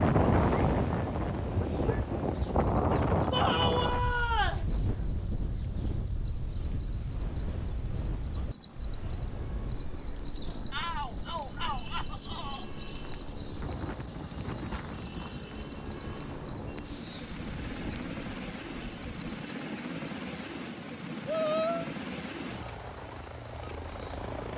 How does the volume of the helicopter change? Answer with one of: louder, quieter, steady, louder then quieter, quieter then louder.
louder.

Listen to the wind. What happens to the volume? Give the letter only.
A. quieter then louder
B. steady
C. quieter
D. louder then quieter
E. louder
C.